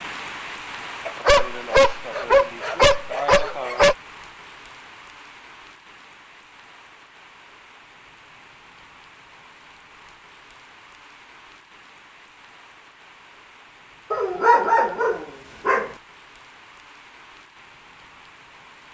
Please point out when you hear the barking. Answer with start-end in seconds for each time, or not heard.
1.1-4.0, 14.1-15.9.